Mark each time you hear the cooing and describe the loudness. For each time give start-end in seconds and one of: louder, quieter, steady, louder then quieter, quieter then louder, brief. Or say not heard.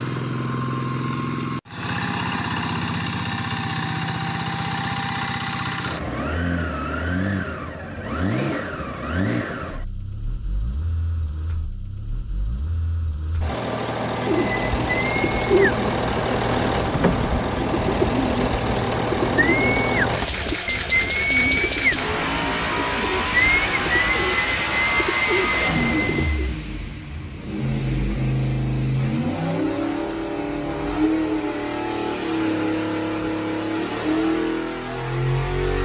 14.2-26.5 steady.